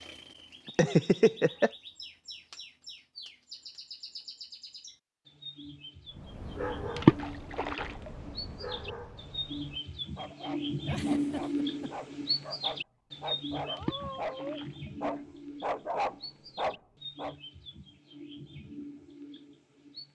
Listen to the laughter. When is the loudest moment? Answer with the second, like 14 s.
1 s.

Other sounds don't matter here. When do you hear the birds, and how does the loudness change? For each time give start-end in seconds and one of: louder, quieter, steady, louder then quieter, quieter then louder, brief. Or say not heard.
0.0-20.1 louder then quieter.